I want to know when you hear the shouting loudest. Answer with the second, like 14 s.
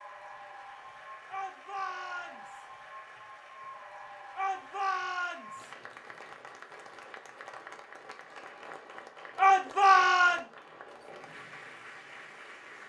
10 s.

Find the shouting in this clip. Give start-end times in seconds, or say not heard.
1.2-2.6, 4.3-5.7, 9.3-10.4.